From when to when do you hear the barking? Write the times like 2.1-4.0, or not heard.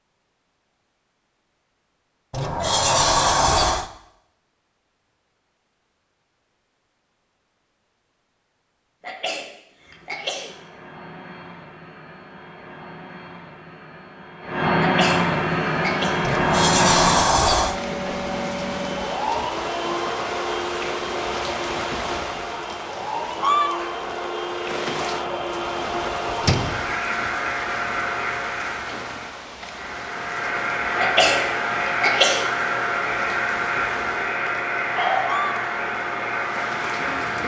not heard.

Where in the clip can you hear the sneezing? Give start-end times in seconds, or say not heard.
9.0-10.6, 14.8-16.1, 30.9-32.5.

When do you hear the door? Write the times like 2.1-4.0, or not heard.
2.3-3.9, 16.2-17.8, 26.4-26.9.